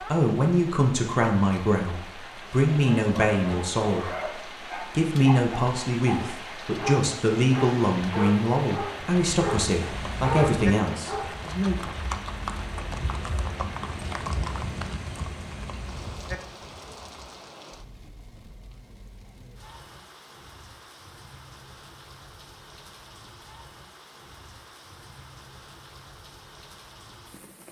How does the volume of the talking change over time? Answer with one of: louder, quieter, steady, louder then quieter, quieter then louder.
steady.